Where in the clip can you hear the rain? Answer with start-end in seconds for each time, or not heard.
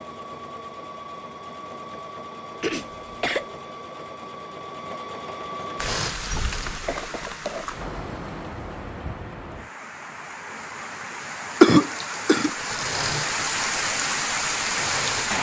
5.8-15.3.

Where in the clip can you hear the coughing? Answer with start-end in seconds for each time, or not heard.
2.6-3.5, 6.8-7.7, 11.6-12.5.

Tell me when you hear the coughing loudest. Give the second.
12 s.